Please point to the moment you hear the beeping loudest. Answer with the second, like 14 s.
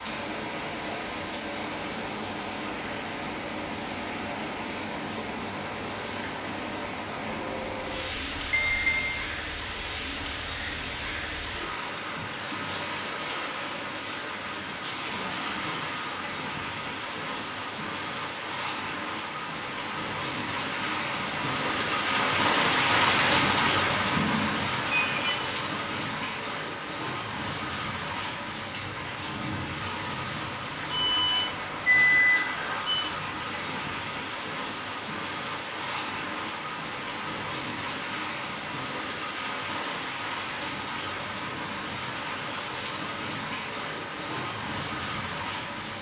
32 s.